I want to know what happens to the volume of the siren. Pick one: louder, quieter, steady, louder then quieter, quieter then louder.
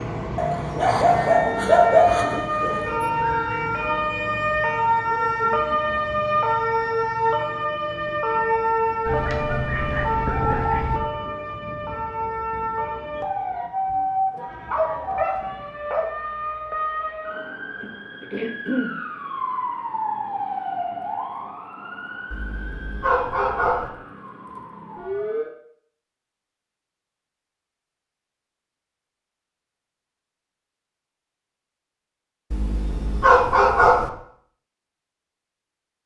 quieter.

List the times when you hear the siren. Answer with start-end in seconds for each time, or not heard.
0.0-25.5.